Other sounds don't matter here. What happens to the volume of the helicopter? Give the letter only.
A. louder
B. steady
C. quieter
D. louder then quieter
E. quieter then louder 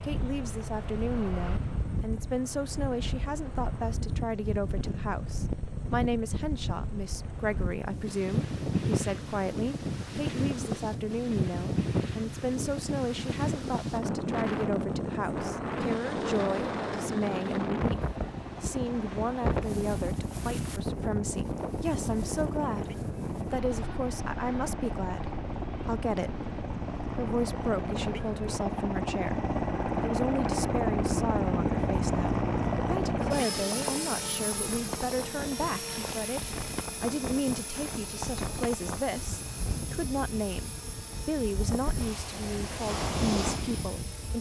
D.